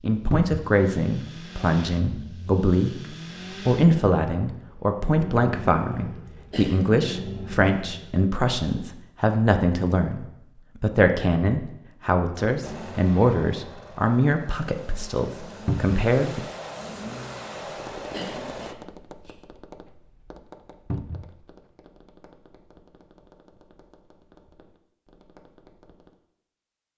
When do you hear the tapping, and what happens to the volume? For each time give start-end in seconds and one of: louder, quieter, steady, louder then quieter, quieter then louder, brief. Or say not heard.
17.6-26.1 quieter.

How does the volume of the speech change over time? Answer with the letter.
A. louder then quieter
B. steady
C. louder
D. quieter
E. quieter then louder
B.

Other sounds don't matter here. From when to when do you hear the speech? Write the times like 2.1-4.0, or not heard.
0.0-16.4.